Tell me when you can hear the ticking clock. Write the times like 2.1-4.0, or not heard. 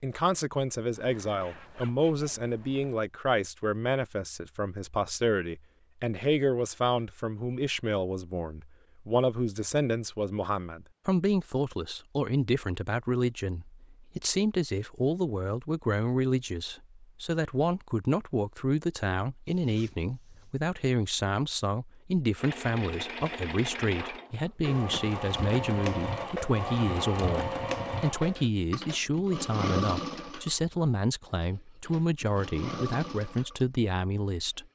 not heard.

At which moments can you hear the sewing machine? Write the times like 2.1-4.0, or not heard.
22.4-34.6.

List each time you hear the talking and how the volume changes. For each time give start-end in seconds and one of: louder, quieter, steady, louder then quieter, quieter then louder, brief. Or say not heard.
0.0-34.6 steady.